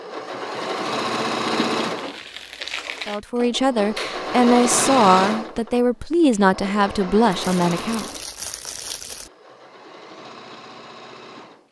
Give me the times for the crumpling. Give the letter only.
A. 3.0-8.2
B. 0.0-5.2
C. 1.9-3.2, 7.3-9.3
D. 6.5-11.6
C.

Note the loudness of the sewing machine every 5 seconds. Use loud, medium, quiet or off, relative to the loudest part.
loud, medium, quiet.